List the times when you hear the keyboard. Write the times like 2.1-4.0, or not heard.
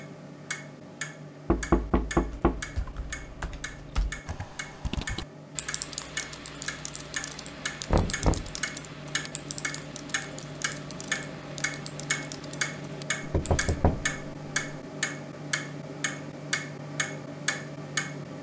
2.3-13.8.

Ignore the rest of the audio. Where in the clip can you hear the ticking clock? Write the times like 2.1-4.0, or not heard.
0.0-18.3.